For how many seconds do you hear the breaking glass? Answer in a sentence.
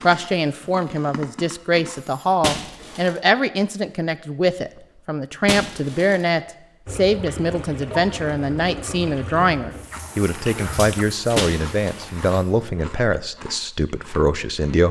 The breaking glass can be heard for 2 seconds in total.